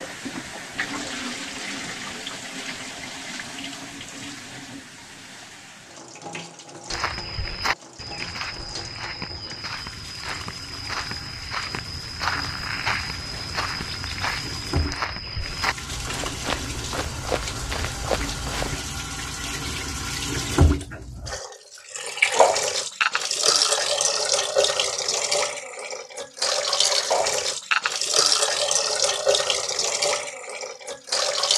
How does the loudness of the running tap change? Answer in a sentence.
The loudness of the running tap goes down, then up.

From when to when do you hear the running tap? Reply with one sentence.
You can hear the running tap from 0.0 to 31.5 s.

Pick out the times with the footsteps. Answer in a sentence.
The footsteps can be heard from 6.9 to 18.8 s.